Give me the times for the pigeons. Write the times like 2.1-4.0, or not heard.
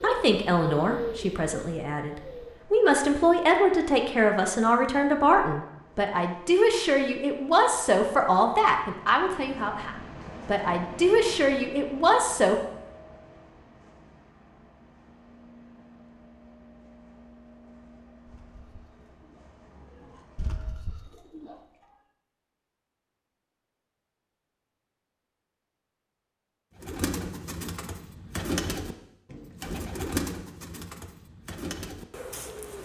0.0-2.6, 18.2-21.9, 26.8-32.8.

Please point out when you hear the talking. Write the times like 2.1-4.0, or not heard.
0.0-12.6.